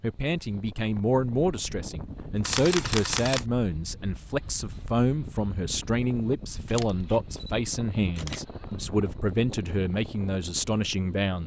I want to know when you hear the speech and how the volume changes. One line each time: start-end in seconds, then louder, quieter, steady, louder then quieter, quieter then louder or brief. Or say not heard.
0.0-11.4 steady.